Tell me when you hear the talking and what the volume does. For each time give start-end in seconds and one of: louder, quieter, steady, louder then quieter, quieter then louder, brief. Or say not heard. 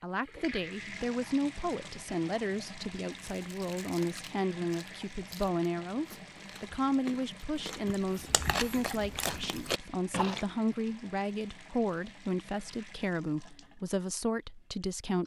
0.0-15.2 steady.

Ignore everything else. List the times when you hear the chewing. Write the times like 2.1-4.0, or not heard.
3.3-10.4.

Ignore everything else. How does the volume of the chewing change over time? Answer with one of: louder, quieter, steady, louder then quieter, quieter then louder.
louder.